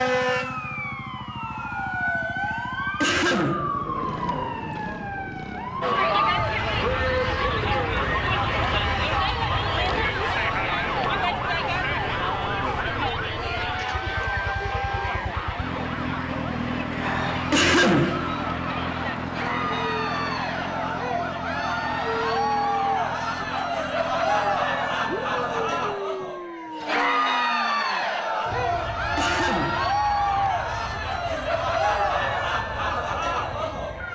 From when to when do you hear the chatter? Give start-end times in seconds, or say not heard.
5.8-34.1.